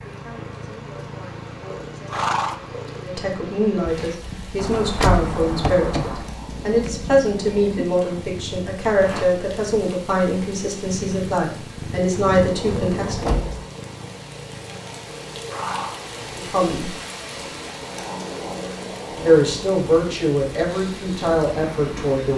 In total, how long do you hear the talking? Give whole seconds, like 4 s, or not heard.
17 s.